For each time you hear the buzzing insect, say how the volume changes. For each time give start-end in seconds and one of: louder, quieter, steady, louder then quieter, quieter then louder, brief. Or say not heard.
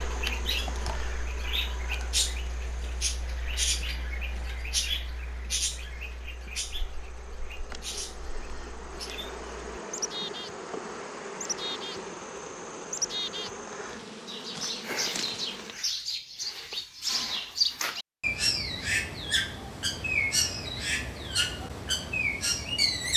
0.0-15.8 quieter then louder.